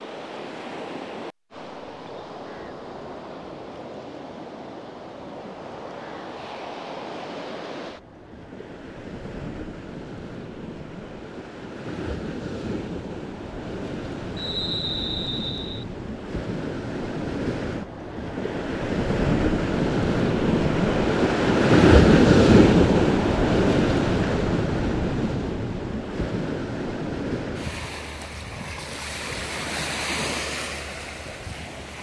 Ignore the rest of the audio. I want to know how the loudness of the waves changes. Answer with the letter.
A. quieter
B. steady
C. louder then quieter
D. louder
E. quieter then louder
C.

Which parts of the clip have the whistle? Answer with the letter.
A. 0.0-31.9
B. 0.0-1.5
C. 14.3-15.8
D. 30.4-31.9
C.